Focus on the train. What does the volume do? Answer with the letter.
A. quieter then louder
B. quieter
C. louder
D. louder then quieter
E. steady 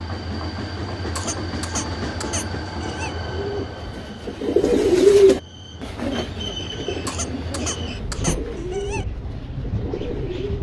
A.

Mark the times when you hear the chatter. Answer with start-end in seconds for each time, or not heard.
not heard.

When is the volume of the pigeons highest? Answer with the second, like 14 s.
5 s.